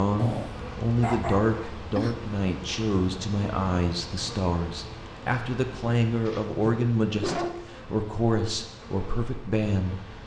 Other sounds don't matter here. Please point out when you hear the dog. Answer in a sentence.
You can hear the dog from 0.1 to 2.1 s and from 6.1 to 7.7 s.